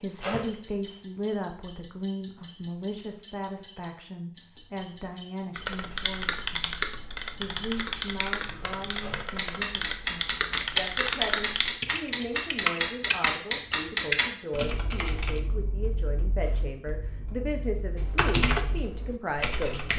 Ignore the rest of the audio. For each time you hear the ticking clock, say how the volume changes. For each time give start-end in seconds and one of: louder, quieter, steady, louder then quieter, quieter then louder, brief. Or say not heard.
0.0-19.9 louder then quieter.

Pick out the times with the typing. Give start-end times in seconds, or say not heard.
5.5-15.4, 17.9-19.9.